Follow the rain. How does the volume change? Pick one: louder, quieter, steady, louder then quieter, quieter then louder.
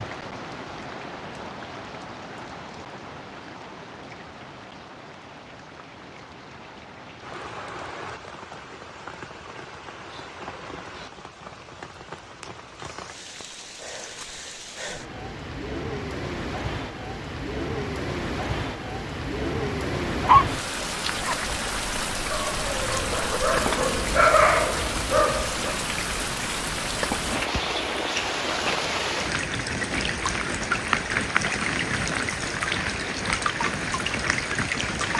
louder.